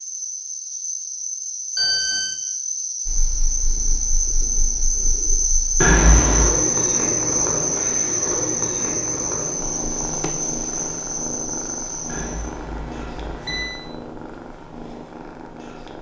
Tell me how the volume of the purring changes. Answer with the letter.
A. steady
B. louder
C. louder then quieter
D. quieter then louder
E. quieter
C.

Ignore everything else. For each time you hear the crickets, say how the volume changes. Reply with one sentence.
The crickets can be heard from 0.0 to 12.5 s, getting louder then quieter.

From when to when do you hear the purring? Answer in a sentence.
You can hear the purring from 3.0 to 15.9 s.